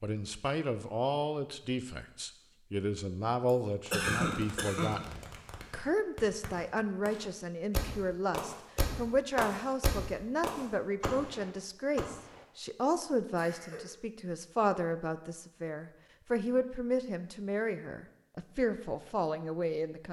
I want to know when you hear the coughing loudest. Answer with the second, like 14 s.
4 s.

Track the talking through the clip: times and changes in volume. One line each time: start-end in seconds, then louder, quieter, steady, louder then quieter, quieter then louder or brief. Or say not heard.
0.0-20.0 steady.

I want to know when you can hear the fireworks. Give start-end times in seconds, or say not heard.
3.9-12.4.